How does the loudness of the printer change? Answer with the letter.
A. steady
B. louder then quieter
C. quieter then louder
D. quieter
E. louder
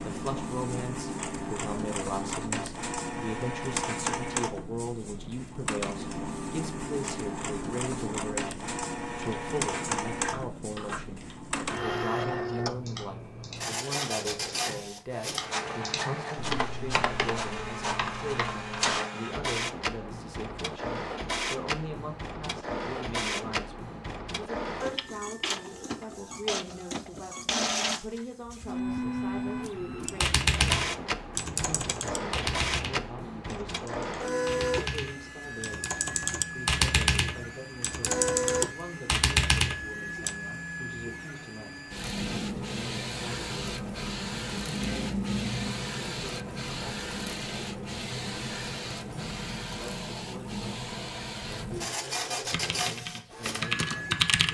A.